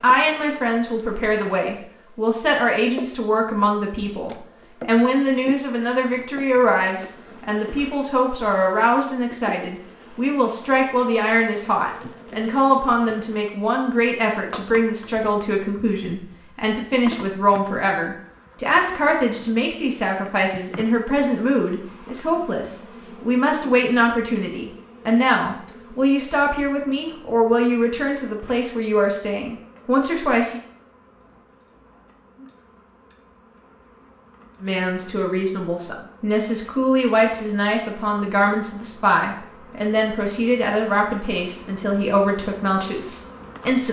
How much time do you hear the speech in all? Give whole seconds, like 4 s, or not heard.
40 s.